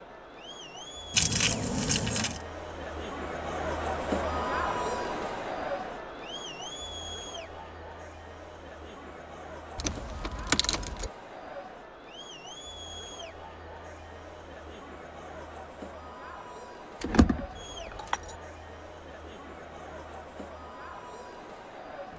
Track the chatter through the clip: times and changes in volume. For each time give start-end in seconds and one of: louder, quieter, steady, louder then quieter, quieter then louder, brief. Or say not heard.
0.0-22.1 quieter.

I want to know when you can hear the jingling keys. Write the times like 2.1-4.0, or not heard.
1.1-2.4, 9.8-11.1, 17.0-18.4.